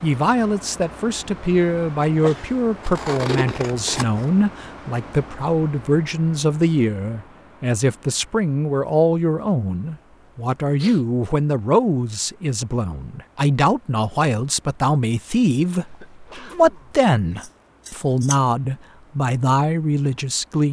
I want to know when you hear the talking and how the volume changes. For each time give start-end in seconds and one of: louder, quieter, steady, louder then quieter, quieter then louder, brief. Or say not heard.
0.0-20.6 steady.